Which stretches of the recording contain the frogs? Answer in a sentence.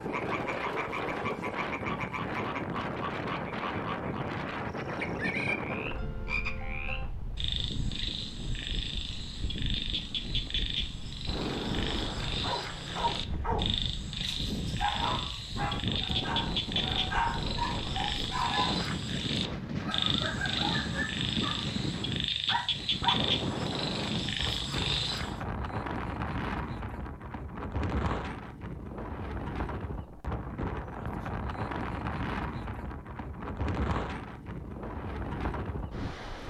The frogs can be heard from 0.0 to 25.4 s.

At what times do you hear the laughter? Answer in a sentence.
You can't hear the laughter here.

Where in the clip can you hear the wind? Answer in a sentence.
The wind can be heard from 0.0 to 36.4 s.